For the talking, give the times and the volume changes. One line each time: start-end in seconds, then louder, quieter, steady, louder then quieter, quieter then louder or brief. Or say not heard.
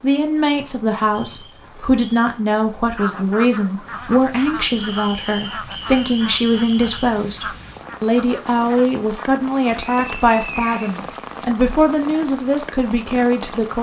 0.0-13.7 steady.